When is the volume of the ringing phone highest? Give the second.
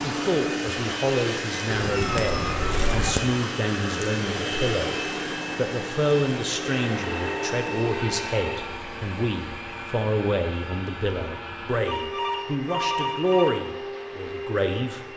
13 s.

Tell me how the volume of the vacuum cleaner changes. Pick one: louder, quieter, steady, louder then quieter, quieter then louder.
quieter.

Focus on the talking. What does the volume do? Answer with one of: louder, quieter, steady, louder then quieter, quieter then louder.
steady.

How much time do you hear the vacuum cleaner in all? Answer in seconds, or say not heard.
15 s.